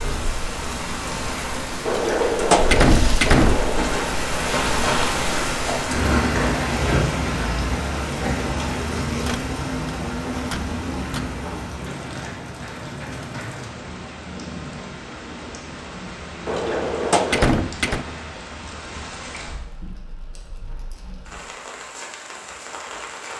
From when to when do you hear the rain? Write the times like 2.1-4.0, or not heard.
0.0-23.3.